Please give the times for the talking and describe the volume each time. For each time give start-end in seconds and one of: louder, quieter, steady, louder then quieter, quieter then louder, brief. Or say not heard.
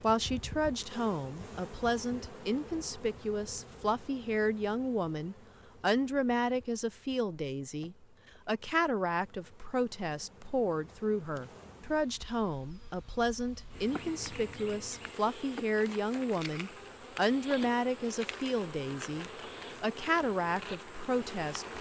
0.0-21.7 steady.